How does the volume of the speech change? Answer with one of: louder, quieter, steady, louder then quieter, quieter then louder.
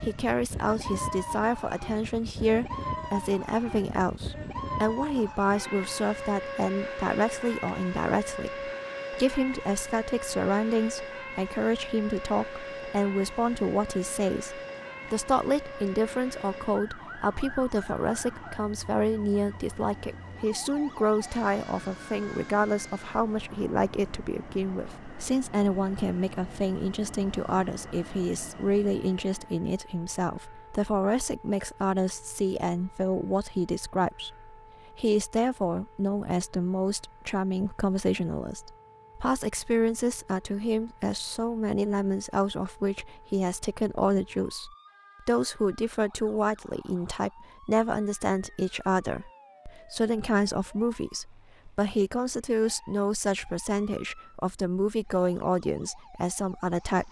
steady.